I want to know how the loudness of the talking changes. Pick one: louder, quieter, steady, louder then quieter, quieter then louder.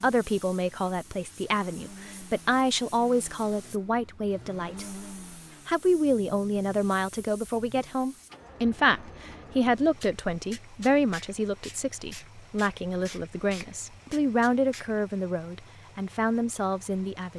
steady.